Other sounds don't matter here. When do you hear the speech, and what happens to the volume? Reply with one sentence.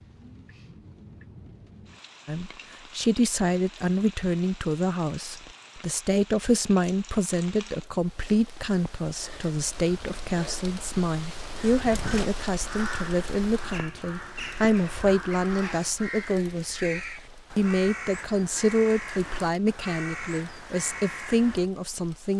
You can hear the speech from 2.2 to 22.3 s, at a steady volume.